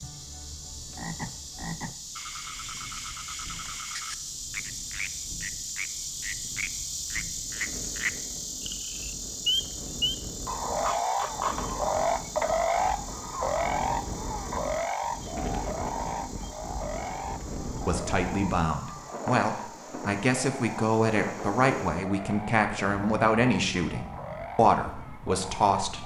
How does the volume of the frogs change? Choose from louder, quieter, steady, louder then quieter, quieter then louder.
louder then quieter.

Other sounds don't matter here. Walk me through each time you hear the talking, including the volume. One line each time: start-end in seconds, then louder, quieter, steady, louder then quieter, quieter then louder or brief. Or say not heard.
17.6-26.0 steady.